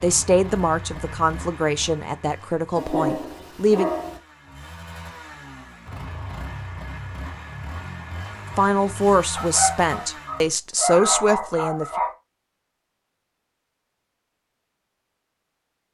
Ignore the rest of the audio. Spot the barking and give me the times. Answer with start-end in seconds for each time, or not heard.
2.8-4.2, 9.3-12.1.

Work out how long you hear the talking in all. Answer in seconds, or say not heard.
7 s.